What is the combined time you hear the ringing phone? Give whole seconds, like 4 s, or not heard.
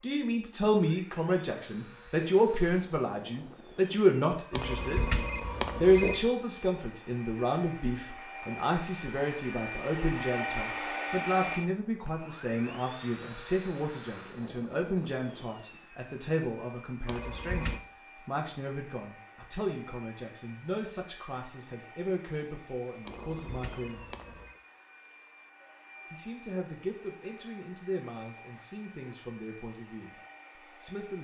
4 s.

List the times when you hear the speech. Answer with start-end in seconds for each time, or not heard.
0.0-5.0, 5.8-24.1, 26.1-31.2.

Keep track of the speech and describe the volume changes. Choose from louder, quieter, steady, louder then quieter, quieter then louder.
quieter.